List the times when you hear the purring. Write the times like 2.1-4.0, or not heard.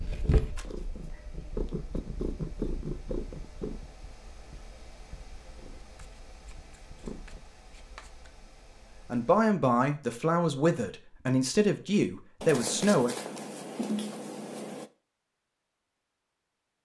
0.0-7.4.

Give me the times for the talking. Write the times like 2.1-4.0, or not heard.
9.1-13.2.